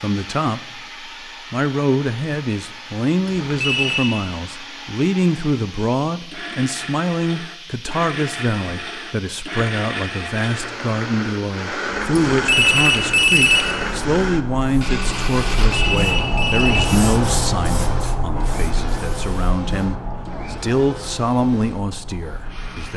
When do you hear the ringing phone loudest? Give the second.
13 s.